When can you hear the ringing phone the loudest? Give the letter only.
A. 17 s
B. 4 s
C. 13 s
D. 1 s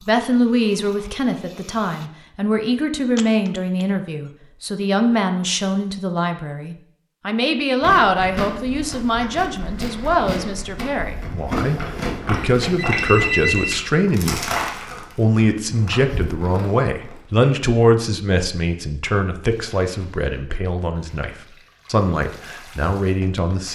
C.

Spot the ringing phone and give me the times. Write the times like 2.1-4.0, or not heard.
3.1-3.9, 12.3-13.8.